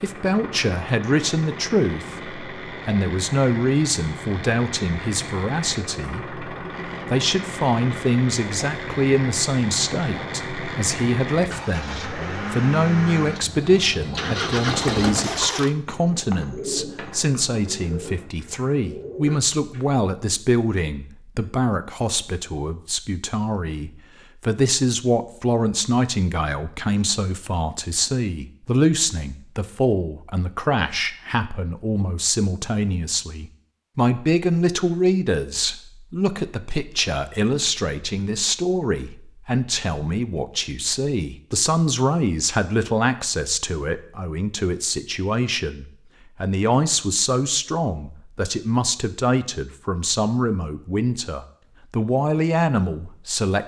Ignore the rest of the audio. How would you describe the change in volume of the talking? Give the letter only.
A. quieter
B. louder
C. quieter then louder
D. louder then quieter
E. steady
E.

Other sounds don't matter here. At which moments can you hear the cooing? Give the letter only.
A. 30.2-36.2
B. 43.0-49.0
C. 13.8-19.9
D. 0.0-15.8
C.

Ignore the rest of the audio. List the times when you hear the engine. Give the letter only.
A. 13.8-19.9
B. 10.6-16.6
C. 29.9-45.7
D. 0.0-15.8
D.